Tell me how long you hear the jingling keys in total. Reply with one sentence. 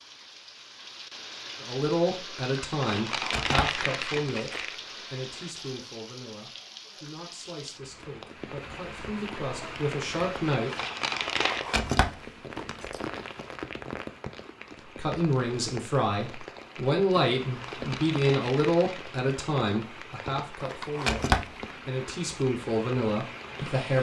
The jingling keys can be heard for 4 seconds in total.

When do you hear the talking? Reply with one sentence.
The talking can be heard from 1.6 to 10.7 s and from 14.9 to 23.9 s.